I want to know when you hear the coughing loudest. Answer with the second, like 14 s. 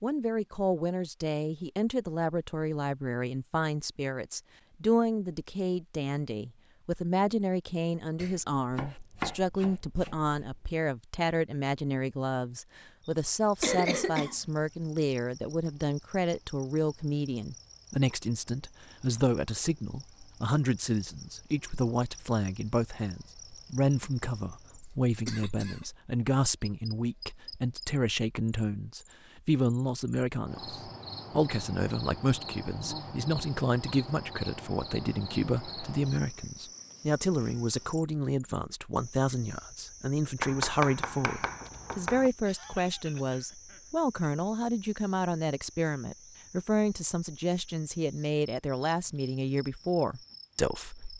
14 s.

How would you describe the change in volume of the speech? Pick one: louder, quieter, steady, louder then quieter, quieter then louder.
steady.